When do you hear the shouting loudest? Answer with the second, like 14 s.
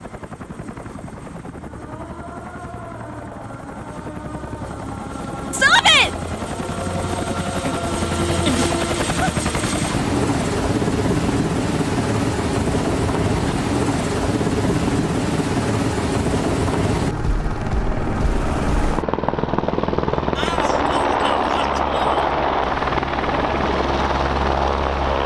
6 s.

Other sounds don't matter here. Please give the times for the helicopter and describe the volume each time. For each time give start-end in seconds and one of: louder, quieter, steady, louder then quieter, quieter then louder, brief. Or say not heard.
0.0-25.2 louder.